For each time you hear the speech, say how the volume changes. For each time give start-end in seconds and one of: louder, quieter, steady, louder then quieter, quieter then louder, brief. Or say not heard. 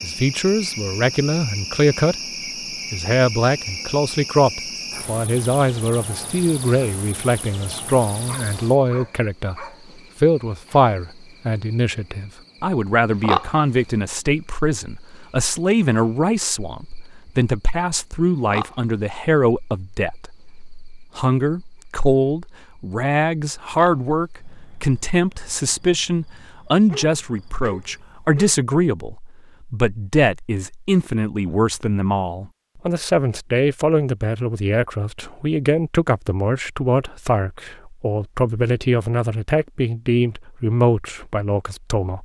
0.0-2.2 brief
2.9-42.1 steady.